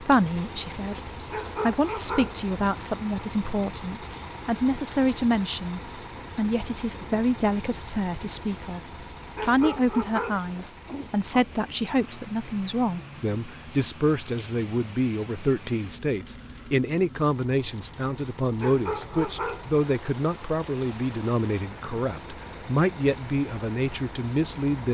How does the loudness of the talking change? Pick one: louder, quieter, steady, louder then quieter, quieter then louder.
steady.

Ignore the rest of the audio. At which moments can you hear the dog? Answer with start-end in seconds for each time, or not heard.
1.3-2.5, 9.3-10.7, 18.6-19.9.